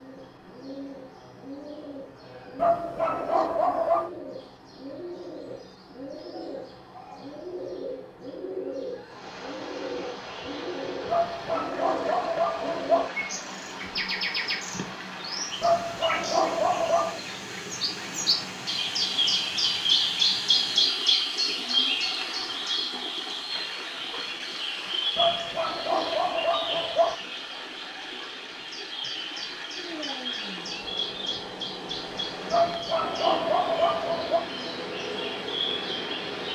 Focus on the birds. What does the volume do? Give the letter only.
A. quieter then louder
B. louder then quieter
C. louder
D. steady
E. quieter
B.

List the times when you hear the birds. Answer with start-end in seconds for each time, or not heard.
0.0-36.4.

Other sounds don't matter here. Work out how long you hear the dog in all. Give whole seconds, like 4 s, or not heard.
9 s.